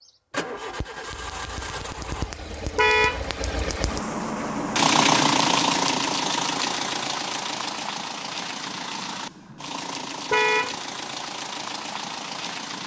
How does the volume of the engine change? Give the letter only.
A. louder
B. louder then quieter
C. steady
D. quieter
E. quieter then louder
B.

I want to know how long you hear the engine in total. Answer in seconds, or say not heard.
13 s.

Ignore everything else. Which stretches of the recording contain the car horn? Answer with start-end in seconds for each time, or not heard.
2.8-3.2, 10.3-10.8.